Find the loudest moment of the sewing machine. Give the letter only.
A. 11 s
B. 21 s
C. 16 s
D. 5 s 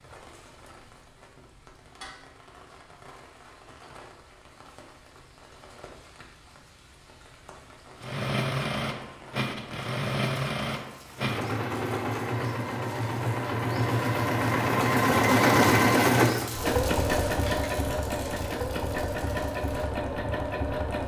C.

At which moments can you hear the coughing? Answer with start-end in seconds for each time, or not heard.
not heard.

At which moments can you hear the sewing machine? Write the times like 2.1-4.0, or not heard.
8.0-21.0.